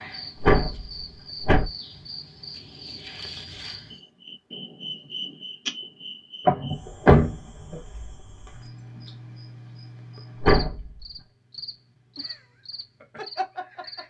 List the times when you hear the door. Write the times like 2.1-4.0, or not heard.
0.3-1.6, 6.5-7.3, 10.3-11.0.